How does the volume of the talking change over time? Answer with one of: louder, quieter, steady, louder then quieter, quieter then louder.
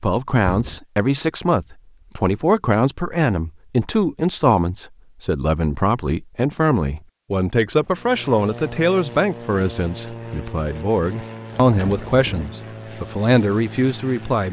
steady.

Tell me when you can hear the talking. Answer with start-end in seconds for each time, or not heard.
0.0-14.4.